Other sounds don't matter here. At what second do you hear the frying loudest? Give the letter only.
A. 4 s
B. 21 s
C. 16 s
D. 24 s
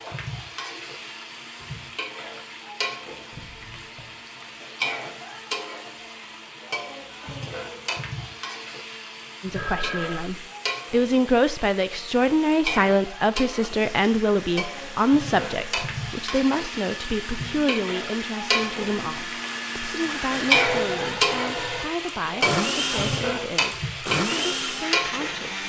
B.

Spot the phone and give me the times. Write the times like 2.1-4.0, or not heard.
3.3-4.2, 9.4-10.2, 20.4-21.9.